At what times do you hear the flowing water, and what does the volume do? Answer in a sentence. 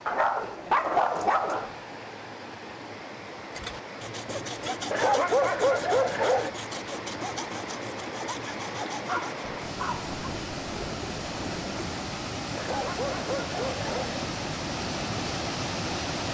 The flowing water can be heard from 0.0 to 16.3 s, getting louder.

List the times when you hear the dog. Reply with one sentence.
You can hear the dog from 0.1 to 1.8 s, from 4.9 to 6.5 s, from 9.1 to 10.1 s and from 12.6 to 14.2 s.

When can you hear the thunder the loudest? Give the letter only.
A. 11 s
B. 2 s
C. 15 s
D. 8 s
A.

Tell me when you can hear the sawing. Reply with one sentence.
You can hear the sawing from 3.5 to 9.4 s.